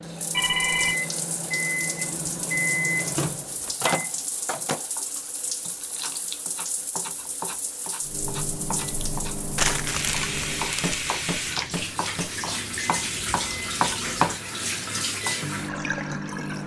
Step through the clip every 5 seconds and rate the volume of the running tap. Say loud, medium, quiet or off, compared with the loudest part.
medium, medium, loud, loud.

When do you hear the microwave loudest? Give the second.
3 s.